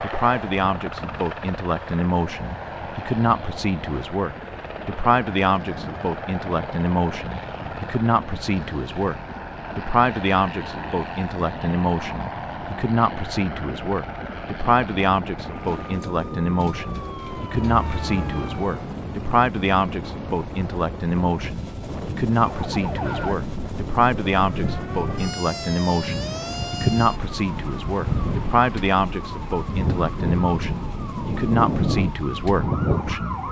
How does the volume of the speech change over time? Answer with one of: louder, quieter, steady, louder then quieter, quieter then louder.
steady.